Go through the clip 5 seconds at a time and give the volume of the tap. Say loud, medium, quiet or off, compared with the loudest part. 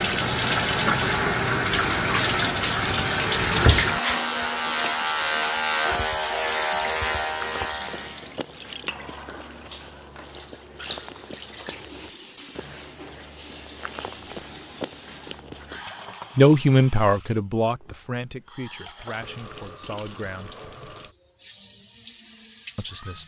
loud, quiet, quiet, quiet, quiet.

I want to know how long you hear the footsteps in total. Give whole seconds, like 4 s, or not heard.
9 s.